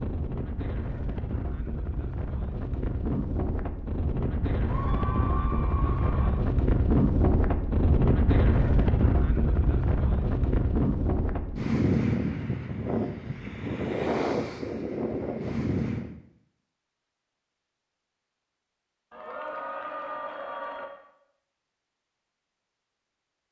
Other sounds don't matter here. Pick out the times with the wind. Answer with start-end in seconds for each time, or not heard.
0.0-16.1.